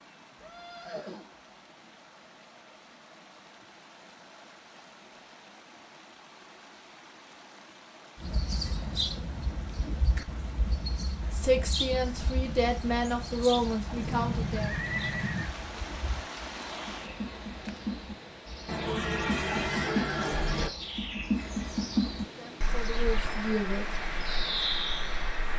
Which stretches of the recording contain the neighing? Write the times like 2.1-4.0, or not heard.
0.3-1.3, 13.9-15.5, 18.6-20.7.